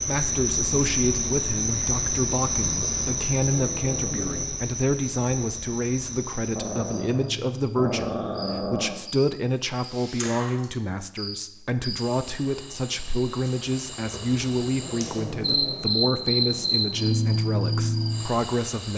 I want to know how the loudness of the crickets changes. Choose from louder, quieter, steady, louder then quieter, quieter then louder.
quieter then louder.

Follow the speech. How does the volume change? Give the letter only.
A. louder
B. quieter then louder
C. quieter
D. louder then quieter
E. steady
E.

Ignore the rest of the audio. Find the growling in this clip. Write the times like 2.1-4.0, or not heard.
2.8-4.5, 6.5-9.0, 14.1-15.8.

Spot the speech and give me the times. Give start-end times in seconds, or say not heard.
0.1-18.9.